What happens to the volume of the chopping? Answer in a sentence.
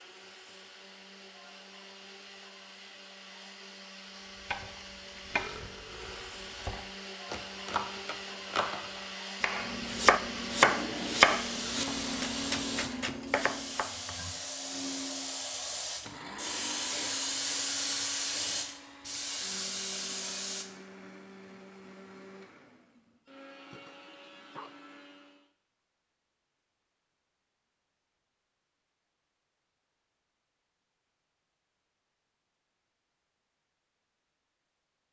The volume of the chopping goes up, then down.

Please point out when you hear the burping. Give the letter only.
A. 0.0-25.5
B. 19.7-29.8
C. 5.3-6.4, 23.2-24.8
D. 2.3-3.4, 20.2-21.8
C.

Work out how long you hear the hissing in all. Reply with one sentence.
The hissing can be heard for 10 seconds in total.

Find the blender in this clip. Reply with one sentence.
The blender can be heard from 0.0 to 25.5 s.